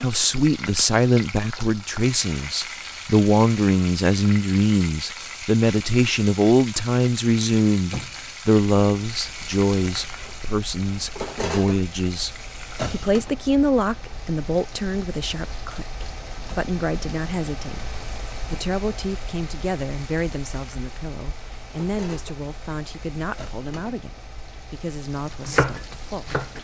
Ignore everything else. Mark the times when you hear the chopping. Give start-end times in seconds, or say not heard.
25.4-26.6.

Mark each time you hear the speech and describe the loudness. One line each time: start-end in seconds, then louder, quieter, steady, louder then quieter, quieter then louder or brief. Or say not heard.
0.0-26.4 quieter.